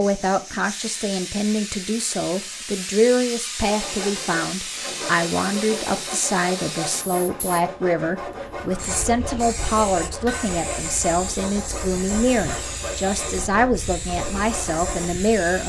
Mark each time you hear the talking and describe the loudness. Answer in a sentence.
The talking can be heard from 0.0 to 15.6 s, at a steady volume.